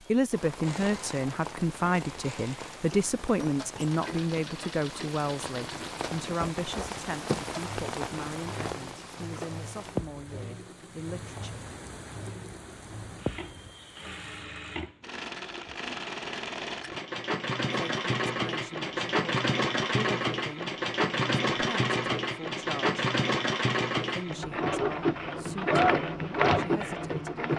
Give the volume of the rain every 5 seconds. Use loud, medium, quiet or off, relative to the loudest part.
medium, loud, medium, off, off, off.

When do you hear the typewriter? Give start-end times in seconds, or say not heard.
not heard.